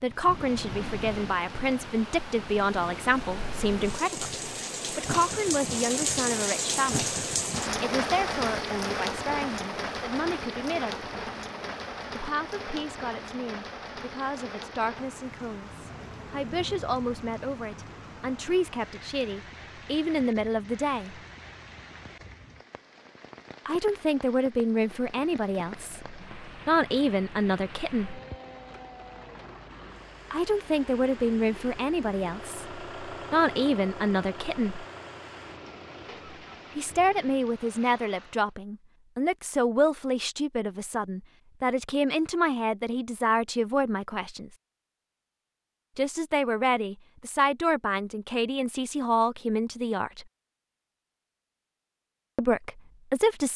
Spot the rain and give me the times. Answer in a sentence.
You can hear the rain from 0.0 to 38.5 s.